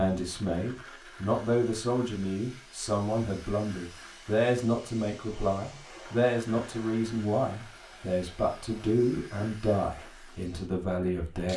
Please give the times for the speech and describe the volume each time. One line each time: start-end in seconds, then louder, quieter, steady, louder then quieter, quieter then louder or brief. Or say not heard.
0.0-11.5 steady.